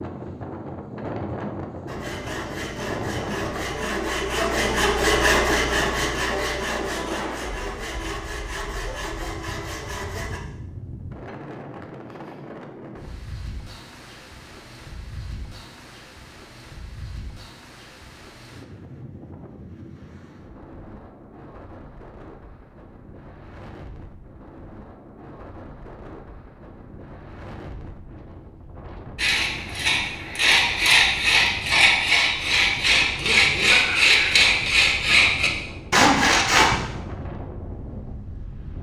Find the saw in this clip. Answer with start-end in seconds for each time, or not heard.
1.9-10.4, 29.1-36.8.